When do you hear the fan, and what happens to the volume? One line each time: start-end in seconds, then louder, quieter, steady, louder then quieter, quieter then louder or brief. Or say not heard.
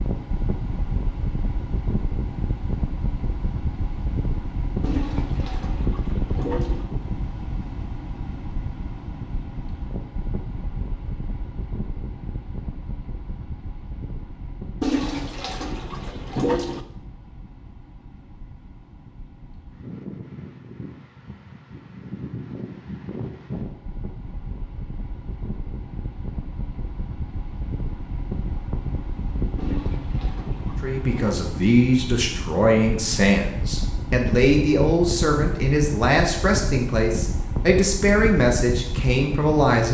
0.0-39.8 quieter then louder.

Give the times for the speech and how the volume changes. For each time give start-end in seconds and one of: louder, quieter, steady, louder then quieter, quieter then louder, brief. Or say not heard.
30.8-39.8 steady.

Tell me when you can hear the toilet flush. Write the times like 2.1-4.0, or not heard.
4.8-6.8, 14.8-16.9, 29.6-31.6.